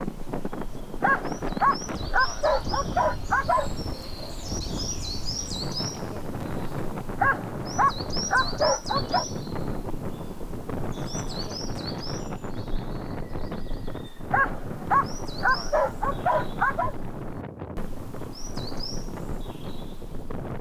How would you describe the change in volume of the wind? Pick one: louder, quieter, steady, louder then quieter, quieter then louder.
steady.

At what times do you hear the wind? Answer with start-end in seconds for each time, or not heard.
0.0-20.5.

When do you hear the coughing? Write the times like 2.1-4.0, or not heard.
not heard.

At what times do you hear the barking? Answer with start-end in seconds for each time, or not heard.
1.0-3.7, 7.2-9.2, 14.3-16.9.